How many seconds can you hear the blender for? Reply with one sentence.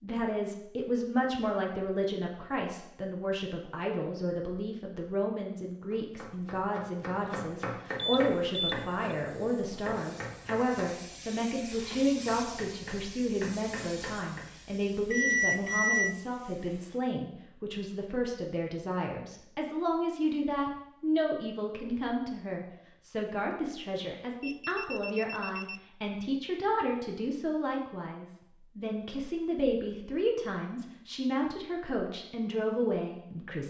The blender can't be heard in this clip.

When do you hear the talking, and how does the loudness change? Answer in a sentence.
The talking can be heard from 0.0 to 33.6 s, at a steady volume.